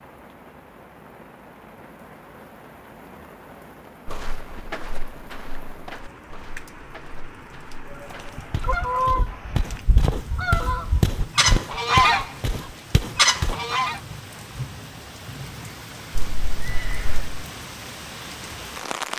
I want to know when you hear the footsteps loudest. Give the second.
11 s.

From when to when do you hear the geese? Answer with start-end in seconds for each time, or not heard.
8.3-14.0.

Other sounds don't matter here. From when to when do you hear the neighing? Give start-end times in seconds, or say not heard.
16.1-17.4.